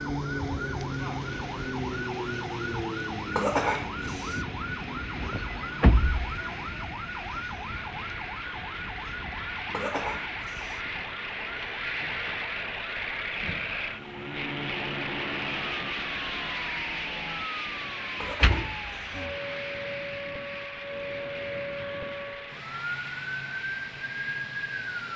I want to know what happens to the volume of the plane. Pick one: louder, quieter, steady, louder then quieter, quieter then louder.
louder then quieter.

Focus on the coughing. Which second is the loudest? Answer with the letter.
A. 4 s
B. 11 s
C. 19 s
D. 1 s
A.